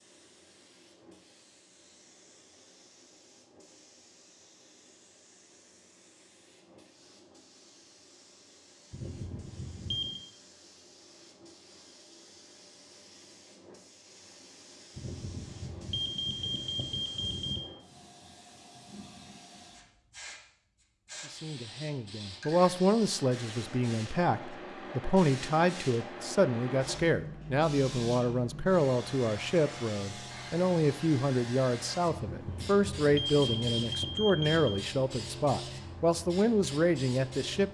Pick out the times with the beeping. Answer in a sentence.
The beeping can be heard from 8.9 to 10.2 s, from 14.9 to 17.6 s and from 32.2 to 34.8 s.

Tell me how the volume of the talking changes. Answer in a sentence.
The loudness of the talking stays about the same.